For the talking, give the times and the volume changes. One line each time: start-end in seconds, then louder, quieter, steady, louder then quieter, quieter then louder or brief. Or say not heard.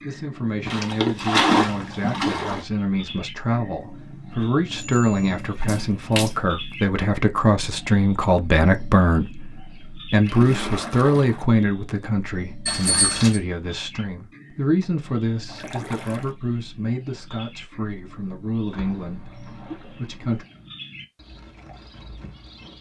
0.0-20.4 louder then quieter.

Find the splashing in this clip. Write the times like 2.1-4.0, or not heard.
0.7-2.6, 5.4-6.3, 10.2-11.4, 15.4-16.4, 18.7-20.4.